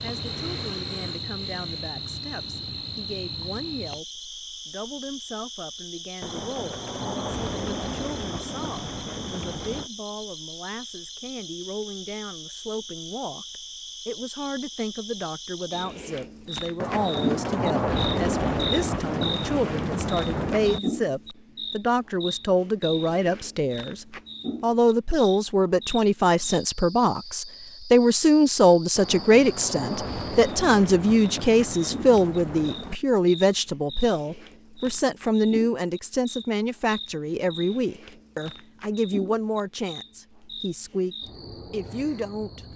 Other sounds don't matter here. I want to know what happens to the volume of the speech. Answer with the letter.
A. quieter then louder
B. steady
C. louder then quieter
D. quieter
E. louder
C.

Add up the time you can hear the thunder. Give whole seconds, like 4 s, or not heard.
12 s.